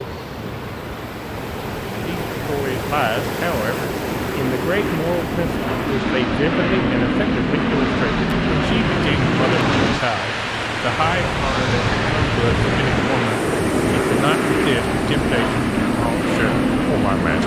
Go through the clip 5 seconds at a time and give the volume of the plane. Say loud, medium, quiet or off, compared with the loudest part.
medium, loud, loud, loud.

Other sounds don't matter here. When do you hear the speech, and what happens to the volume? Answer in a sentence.
The speech can be heard from 2.0 to 17.4 s, at a steady volume.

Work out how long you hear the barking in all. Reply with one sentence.
You can't hear the barking here.